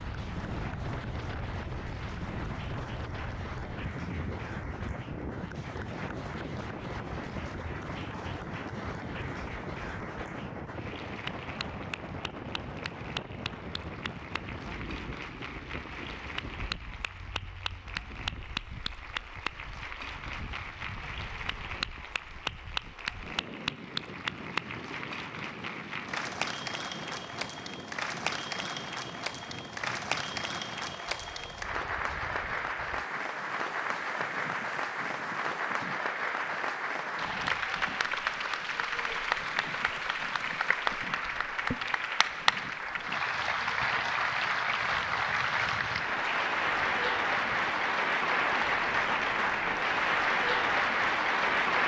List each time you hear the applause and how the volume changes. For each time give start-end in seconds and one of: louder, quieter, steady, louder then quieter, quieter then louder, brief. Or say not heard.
0.0-51.8 louder.